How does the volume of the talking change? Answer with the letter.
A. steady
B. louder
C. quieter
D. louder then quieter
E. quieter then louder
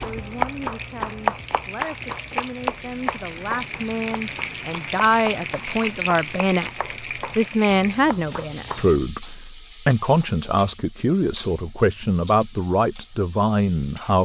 B.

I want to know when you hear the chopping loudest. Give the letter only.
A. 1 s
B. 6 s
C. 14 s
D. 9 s
A.